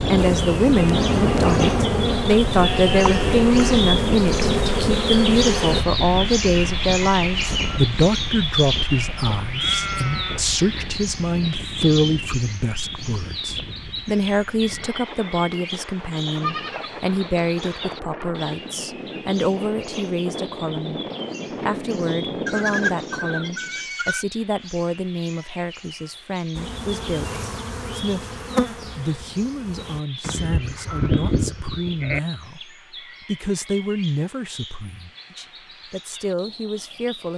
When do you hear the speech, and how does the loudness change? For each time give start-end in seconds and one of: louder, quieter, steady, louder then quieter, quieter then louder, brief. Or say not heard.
0.1-21.0 quieter
21.6-37.3 steady.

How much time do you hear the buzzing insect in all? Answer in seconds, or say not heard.
9 s.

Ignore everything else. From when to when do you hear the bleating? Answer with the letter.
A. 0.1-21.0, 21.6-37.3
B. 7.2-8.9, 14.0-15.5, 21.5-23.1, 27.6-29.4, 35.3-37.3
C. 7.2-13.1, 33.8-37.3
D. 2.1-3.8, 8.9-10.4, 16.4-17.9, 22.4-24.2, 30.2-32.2
D.